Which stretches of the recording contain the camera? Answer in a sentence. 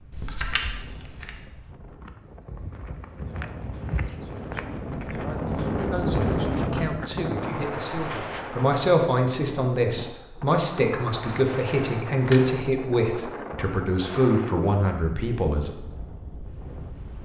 The camera can be heard from 0.1 to 1.4 s and from 11.3 to 12.4 s.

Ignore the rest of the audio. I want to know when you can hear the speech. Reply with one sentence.
You can hear the speech from 5.9 to 15.8 s.